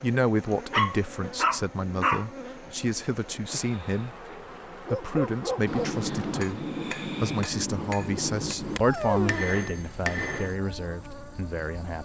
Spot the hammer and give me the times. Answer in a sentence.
You can hear the hammer from 5.7 to 10.6 s.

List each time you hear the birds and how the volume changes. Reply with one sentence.
The birds can't be heard in this clip.